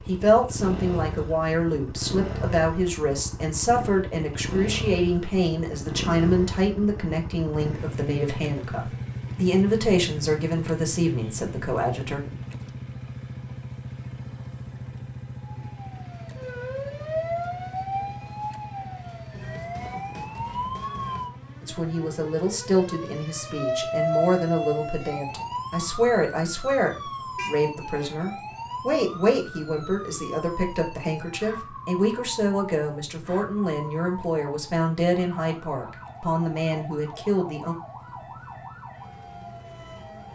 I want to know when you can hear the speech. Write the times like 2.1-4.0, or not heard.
0.1-12.2, 21.6-37.8.